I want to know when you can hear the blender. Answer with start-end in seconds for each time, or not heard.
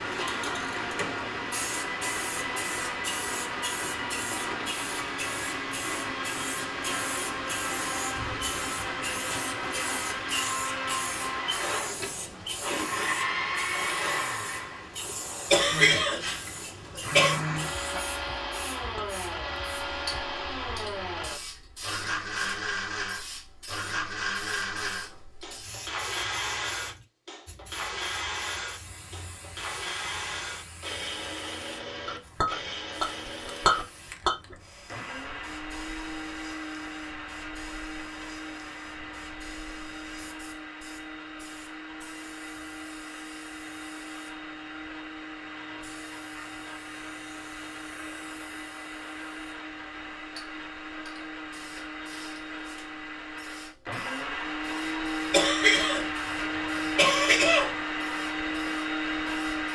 0.0-33.9, 34.9-59.6.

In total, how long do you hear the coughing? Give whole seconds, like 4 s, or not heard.
4 s.